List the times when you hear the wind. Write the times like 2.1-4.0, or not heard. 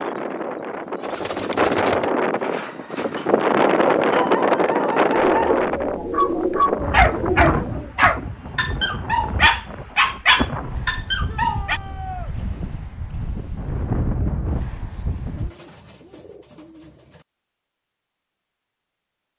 0.0-15.5.